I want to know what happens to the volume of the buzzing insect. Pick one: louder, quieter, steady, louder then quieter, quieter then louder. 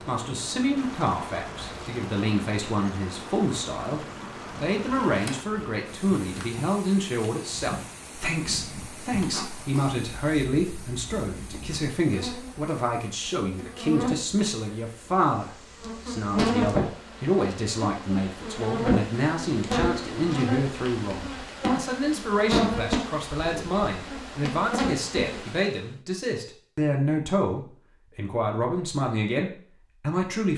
louder.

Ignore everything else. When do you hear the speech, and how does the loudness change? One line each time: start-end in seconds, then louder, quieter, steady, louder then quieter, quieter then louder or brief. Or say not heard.
0.0-30.5 steady.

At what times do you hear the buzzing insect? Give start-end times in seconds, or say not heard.
0.0-25.4.